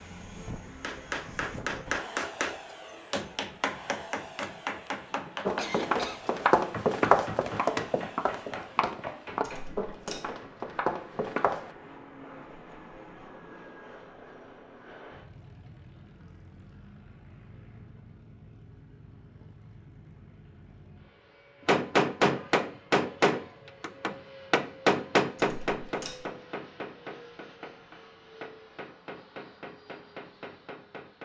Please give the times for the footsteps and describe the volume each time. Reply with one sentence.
You can hear the footsteps from 5.5 to 11.7 s, getting quieter.